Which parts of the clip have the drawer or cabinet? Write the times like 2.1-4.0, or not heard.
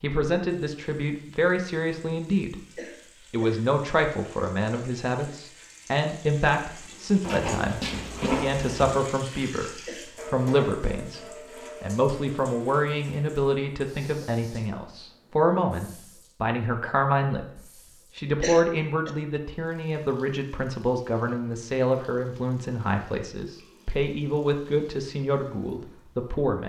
7.2-8.9.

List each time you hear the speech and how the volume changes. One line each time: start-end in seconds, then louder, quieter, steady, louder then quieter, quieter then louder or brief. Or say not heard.
0.0-2.6 brief
3.2-26.6 steady.